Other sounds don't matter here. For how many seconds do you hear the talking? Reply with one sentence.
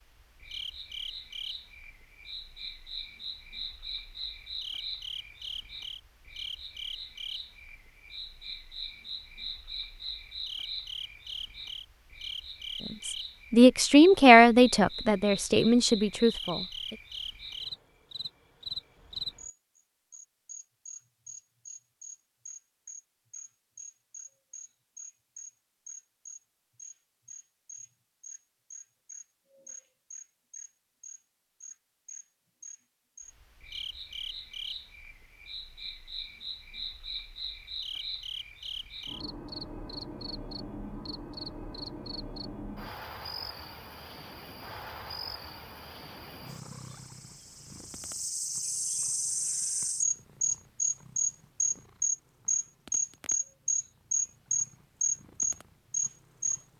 The talking can be heard for 4 seconds in total.